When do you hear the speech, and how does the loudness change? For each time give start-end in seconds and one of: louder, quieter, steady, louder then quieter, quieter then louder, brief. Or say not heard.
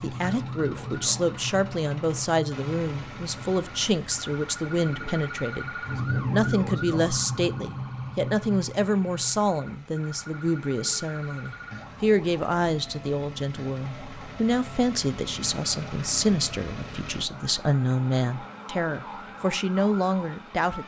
0.0-5.7 steady
6.3-20.8 steady.